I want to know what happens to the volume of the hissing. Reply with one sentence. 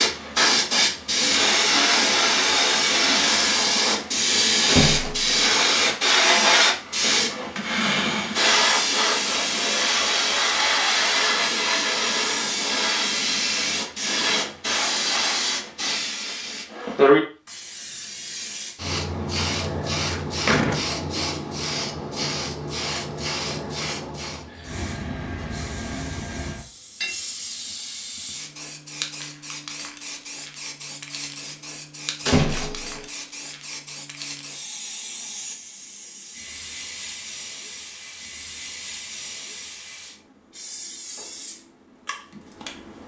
The volume of the hissing goes down.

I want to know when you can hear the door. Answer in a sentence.
The door can be heard from 4.7 to 5.4 s, from 20.0 to 20.9 s and from 32.2 to 33.0 s.